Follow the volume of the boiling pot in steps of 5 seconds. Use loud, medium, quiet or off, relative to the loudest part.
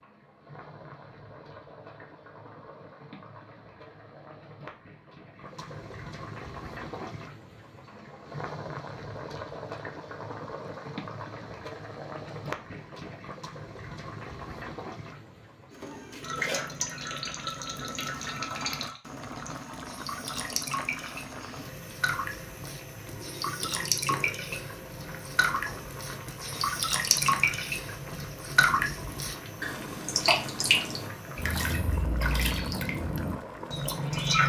medium, loud, loud, loud, loud, loud, loud.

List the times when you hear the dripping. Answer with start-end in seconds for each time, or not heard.
16.2-34.4.